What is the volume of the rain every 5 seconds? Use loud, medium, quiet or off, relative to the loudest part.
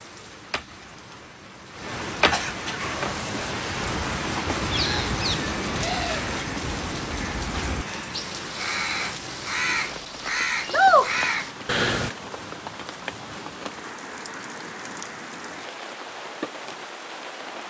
loud, loud, medium, medium.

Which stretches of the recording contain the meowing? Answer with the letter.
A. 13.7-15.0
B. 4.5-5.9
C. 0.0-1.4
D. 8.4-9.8
B.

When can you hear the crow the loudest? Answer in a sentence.
The volume of the crow peaks at 11 seconds.